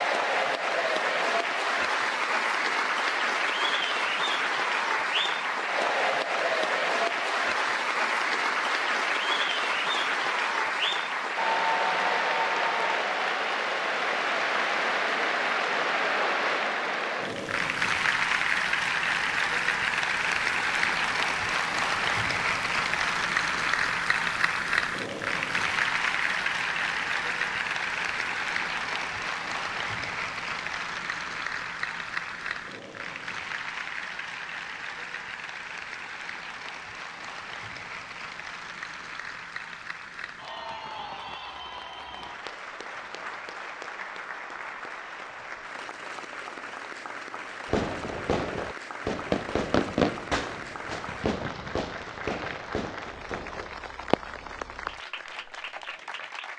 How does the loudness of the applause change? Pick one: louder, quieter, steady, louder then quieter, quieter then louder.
quieter.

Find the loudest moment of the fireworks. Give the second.
50 s.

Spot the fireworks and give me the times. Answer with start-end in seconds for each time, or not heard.
47.6-54.6, 55.2-55.7.